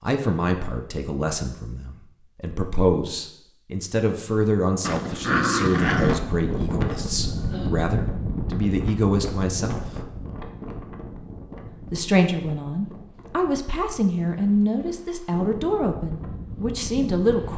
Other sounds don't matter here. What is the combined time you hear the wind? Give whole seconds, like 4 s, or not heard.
12 s.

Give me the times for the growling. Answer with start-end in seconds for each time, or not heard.
4.8-6.2.